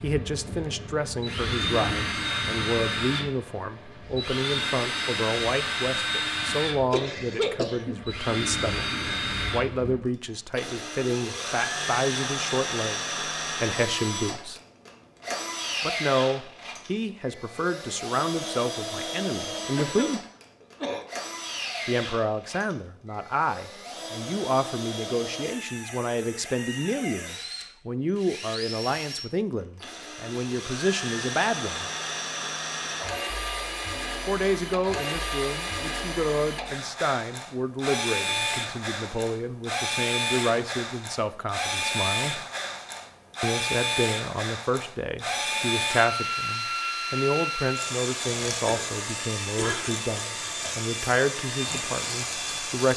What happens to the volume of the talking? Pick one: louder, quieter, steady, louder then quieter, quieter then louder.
steady.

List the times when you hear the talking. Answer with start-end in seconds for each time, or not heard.
0.0-14.6, 15.8-20.2, 21.9-31.9, 34.2-42.4, 43.4-52.9.